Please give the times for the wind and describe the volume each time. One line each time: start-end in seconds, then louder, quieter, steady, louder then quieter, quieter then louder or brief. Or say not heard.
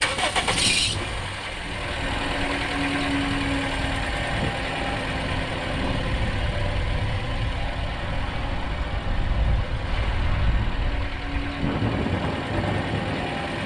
0.0-13.6 louder.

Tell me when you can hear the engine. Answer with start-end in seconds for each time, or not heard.
0.0-13.6.